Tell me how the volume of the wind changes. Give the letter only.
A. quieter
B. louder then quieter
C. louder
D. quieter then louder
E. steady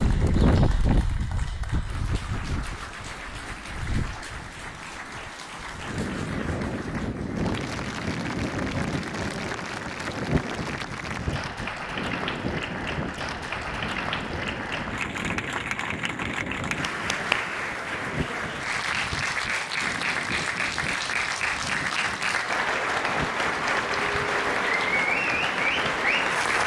A.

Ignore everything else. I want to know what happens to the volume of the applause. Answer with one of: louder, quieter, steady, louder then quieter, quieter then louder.
louder.